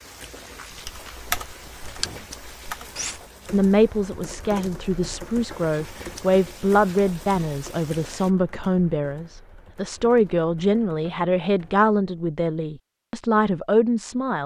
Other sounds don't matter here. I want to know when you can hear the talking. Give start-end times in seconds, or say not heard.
3.5-14.4.